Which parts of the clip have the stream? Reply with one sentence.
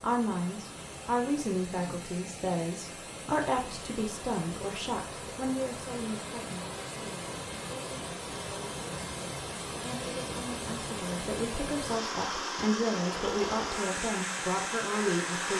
You can hear the stream from 0.0 to 15.5 s.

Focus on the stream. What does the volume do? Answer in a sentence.
The volume of the stream goes up.